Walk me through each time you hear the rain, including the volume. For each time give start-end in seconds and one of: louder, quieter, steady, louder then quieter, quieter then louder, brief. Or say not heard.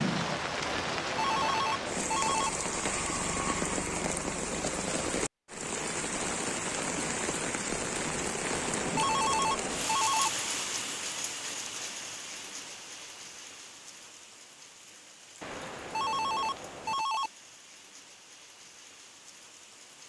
0.0-20.0 quieter.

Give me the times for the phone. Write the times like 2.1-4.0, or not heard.
0.6-2.5, 8.4-10.3, 15.4-17.3.